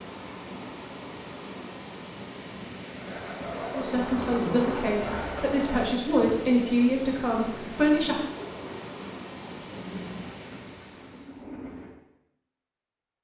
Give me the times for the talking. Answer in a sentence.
You can hear the talking from 3.8 to 8.2 s.